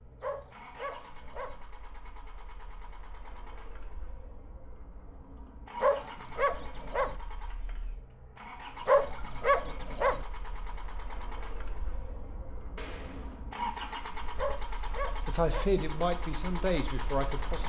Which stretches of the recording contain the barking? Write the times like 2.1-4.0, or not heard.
0.2-1.6, 5.8-7.2, 8.8-10.2, 14.3-15.8.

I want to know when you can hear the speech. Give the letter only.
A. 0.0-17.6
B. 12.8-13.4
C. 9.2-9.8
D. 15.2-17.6
D.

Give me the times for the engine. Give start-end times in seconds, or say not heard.
0.0-17.6.